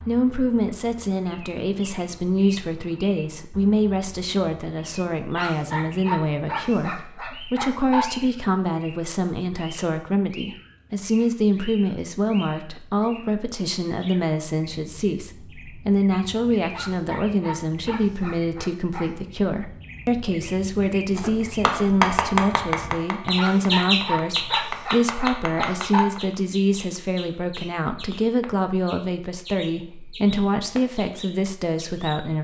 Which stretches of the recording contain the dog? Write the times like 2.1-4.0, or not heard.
5.3-8.1, 16.7-19.1, 23.4-26.1.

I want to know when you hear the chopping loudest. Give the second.
22 s.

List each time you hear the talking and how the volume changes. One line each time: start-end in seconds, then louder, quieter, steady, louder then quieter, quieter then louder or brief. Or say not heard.
0.1-32.3 steady.